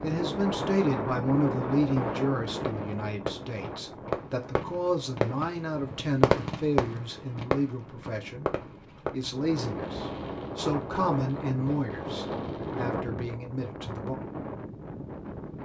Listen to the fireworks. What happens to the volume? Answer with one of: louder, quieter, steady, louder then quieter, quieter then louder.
louder then quieter.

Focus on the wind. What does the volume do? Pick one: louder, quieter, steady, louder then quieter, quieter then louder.
quieter then louder.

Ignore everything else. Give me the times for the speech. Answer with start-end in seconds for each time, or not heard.
0.0-8.5, 9.1-14.2.